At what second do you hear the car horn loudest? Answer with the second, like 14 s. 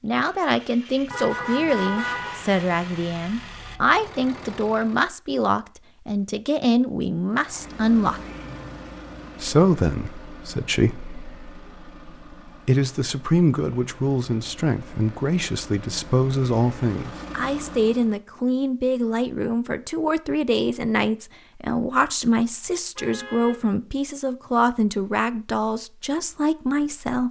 2 s.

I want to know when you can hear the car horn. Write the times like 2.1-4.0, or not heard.
1.1-2.5, 22.9-23.6.